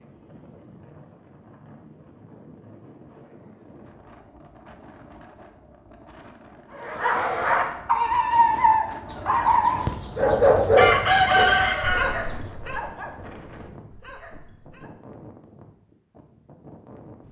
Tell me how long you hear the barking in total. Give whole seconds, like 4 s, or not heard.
8 s.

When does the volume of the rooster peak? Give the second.
11 s.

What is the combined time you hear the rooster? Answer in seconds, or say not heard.
3 s.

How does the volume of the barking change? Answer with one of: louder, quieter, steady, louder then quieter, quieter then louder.
quieter.